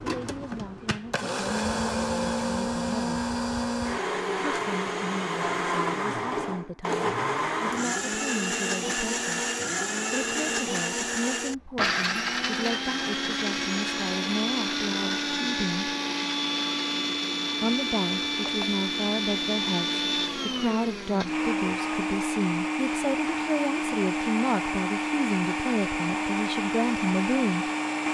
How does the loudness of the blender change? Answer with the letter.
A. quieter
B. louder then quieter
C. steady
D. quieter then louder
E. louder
C.